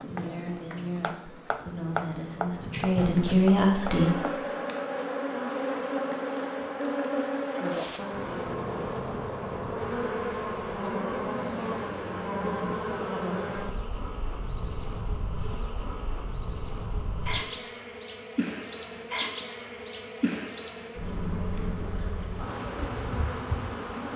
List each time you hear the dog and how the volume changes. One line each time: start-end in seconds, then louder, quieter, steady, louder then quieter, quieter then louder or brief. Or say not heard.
not heard.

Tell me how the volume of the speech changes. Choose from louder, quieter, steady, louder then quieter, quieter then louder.
quieter then louder.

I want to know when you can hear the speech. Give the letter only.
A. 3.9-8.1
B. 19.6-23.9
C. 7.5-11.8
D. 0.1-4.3
D.